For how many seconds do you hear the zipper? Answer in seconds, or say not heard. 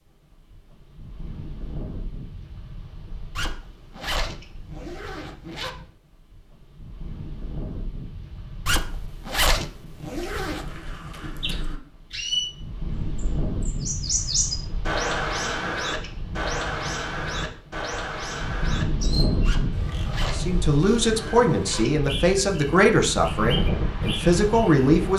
7 s.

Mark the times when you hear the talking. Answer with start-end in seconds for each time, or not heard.
20.2-25.1.